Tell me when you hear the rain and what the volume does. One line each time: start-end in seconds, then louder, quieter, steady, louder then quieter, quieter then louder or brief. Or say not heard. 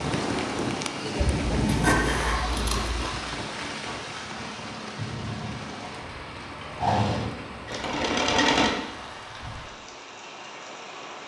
0.0-11.2 quieter.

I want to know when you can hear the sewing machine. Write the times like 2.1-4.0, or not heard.
6.8-8.8.